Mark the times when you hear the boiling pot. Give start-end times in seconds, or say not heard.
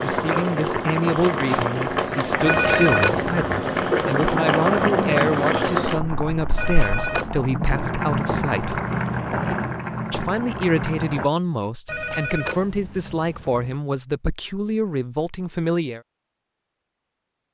0.0-11.3.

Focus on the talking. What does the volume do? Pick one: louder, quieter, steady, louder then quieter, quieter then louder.
steady.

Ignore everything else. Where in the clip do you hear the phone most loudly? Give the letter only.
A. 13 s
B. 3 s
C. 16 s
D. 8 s
B.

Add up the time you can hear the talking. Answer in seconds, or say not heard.
15 s.